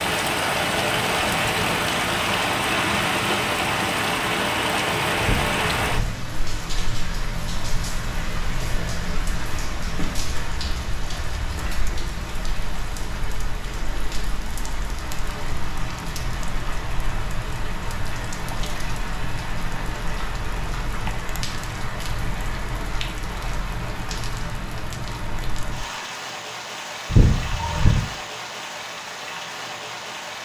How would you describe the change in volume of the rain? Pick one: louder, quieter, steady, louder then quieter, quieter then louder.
quieter.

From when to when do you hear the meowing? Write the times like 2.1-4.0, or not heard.
5.2-6.2, 27.1-28.0.